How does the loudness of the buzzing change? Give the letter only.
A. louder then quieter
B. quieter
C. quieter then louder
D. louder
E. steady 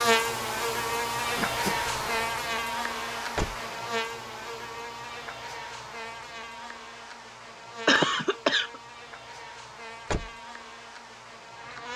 B.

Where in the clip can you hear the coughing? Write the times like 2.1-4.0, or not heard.
1.4-2.3, 7.8-8.8.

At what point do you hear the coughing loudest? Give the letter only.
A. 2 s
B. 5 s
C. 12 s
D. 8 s
D.